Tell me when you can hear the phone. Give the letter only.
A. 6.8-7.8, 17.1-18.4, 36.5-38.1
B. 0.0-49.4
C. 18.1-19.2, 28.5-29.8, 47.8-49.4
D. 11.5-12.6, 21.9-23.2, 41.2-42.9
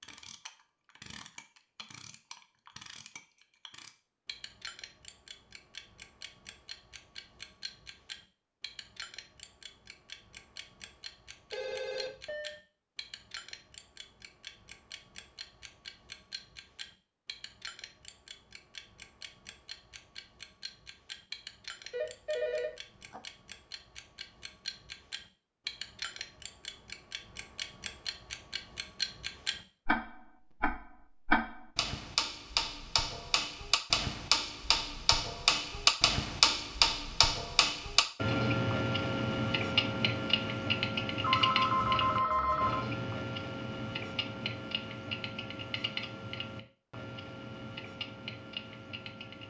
D.